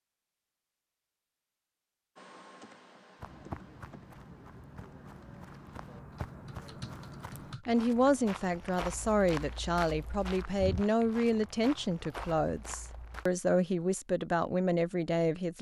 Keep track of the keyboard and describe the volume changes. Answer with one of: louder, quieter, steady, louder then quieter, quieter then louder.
quieter then louder.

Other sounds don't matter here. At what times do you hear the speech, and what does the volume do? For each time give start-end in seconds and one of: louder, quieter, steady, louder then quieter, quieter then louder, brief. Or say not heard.
7.7-15.5 steady.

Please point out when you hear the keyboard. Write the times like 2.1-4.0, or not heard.
2.1-7.7.